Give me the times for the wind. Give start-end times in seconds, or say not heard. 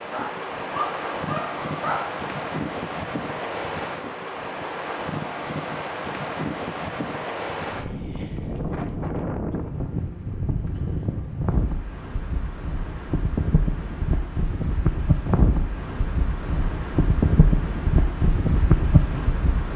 0.0-19.7.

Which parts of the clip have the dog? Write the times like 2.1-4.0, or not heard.
0.1-2.2.